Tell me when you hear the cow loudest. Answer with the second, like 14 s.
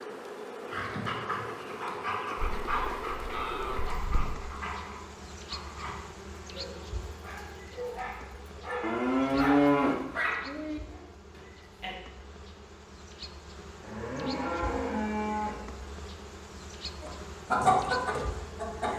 10 s.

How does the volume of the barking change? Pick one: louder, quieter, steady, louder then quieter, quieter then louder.
quieter then louder.